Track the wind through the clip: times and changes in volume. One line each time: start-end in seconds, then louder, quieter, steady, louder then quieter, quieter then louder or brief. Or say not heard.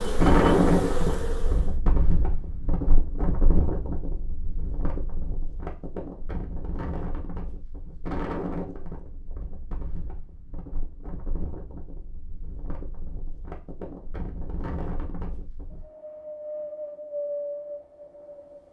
0.0-18.6 quieter then louder.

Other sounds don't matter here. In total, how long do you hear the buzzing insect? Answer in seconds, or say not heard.
2 s.